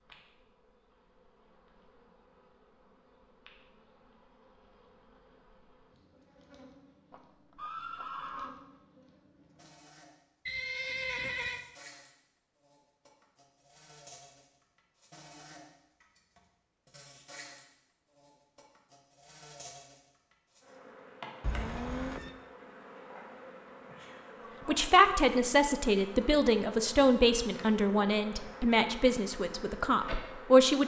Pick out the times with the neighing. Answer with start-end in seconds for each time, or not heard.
7.1-8.5, 10.4-11.6, 21.4-22.4.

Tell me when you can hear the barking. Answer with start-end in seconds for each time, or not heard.
not heard.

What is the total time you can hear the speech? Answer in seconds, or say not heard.
6 s.